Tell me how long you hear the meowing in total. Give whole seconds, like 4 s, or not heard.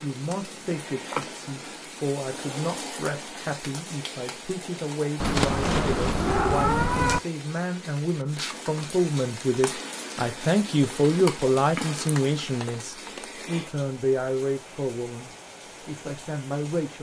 2 s.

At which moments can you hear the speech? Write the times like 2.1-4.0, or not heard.
0.0-16.9.